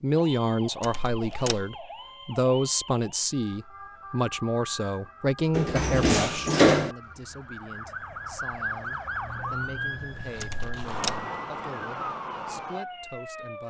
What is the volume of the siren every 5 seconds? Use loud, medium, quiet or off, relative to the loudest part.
medium, loud, loud.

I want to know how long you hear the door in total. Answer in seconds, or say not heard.
3 s.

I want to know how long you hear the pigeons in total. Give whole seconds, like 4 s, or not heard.
not heard.